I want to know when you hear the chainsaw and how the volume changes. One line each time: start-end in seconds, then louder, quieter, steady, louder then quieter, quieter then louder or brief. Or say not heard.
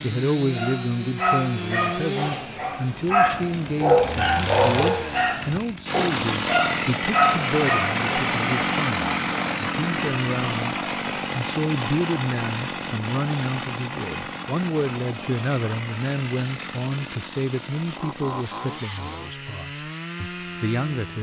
0.0-21.1 louder then quieter.